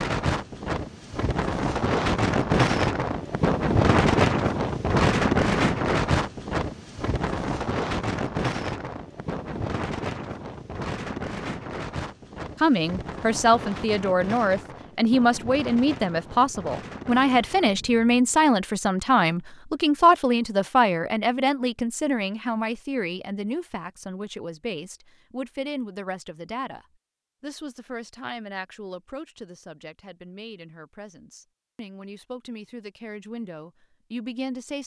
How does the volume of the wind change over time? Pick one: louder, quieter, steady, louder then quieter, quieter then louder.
quieter.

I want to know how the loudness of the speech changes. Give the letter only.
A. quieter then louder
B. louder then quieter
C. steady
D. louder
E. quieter
E.